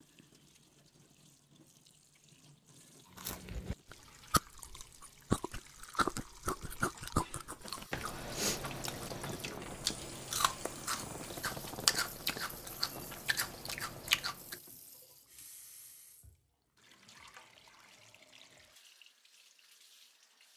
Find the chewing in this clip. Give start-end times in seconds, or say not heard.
3.1-14.6.